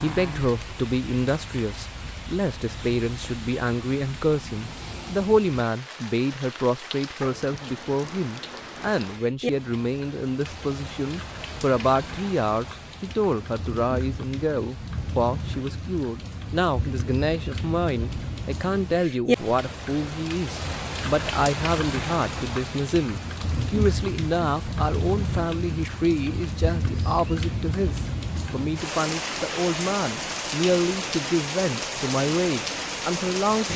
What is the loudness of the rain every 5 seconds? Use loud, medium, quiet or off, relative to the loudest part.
medium, medium, medium, loud, loud, loud, loud.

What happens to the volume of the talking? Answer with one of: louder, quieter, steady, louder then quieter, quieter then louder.
steady.